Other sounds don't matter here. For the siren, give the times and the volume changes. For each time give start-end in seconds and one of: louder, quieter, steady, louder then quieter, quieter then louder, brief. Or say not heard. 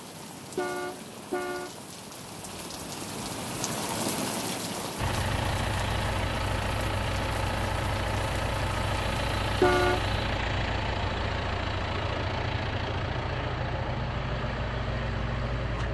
not heard.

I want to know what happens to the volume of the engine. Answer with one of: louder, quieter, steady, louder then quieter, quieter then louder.
steady.